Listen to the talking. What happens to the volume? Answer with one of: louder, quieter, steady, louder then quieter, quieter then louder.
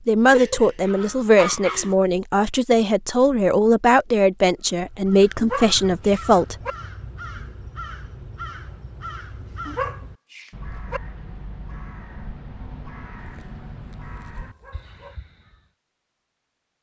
steady.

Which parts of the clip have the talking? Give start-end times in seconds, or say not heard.
0.1-6.5.